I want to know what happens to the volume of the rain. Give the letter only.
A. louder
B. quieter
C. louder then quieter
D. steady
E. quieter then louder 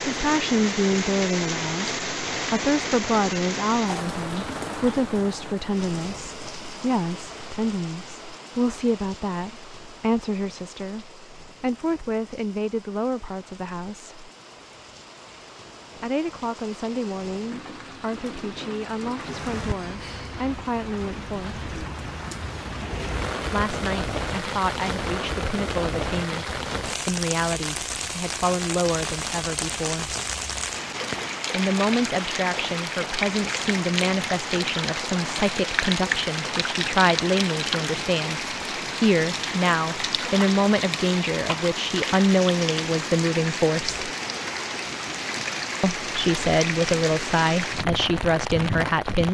E.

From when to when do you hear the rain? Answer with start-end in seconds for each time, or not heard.
0.0-49.2.